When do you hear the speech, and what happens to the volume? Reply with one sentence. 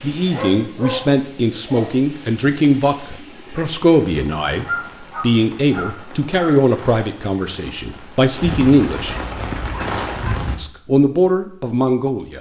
You can hear the speech from 0.0 to 9.2 s, at a steady volume; and briefly from 10.6 to 12.3 s.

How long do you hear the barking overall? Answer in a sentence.
The barking can be heard for 6 seconds in total.